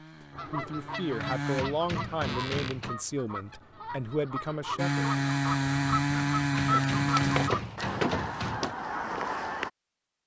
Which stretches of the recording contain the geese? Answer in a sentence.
You can hear the geese from 0.3 to 9.7 s.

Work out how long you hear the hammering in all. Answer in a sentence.
You can hear the hammering for 4 seconds altogether.